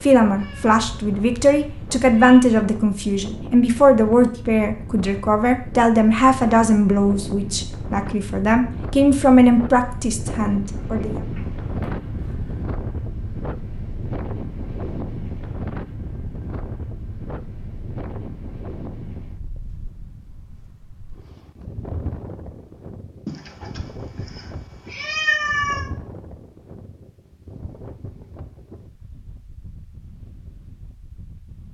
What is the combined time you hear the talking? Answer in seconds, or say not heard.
11 s.